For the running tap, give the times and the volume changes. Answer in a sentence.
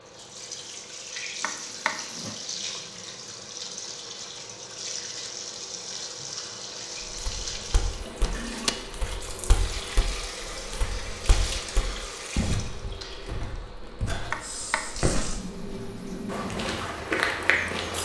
The running tap can be heard from 0.0 to 17.9 s, at a steady volume.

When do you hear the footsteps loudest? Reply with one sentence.
The volume of the footsteps peaks at 17 seconds.